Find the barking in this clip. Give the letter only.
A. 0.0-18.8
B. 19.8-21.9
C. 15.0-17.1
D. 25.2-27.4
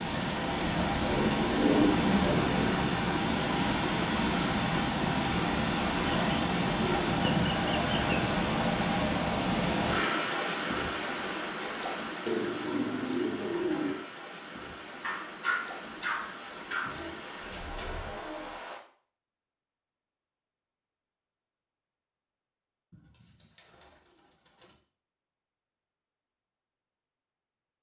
C.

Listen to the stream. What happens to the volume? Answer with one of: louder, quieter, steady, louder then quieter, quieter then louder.
quieter.